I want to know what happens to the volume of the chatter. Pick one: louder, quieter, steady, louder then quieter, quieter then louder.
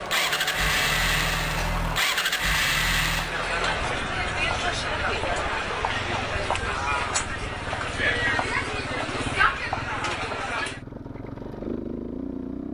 louder.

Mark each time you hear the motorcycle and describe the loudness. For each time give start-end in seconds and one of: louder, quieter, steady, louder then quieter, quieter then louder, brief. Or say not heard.
0.0-12.6 quieter.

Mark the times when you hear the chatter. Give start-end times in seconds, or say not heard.
0.0-10.8.